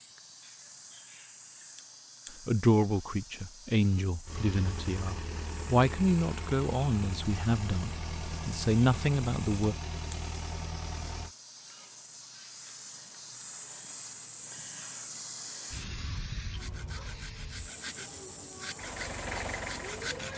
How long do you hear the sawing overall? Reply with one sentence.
The sawing can be heard for 4 seconds in total.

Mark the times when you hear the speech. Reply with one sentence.
You can hear the speech from 2.5 to 9.8 s.